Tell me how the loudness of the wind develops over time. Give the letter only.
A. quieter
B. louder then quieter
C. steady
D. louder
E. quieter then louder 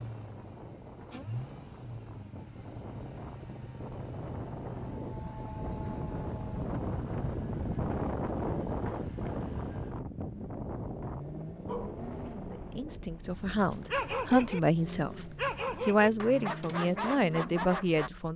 B.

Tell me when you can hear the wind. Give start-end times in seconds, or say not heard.
0.0-14.3.